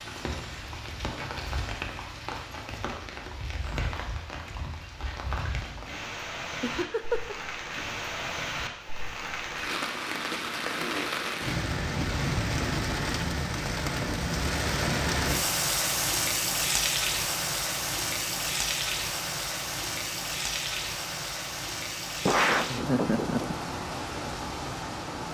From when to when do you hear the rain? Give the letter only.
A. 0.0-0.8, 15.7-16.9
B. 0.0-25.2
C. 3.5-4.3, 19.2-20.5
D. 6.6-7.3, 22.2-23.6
B.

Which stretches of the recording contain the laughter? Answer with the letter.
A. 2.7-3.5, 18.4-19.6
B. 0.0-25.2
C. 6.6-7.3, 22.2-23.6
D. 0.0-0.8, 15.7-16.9
C.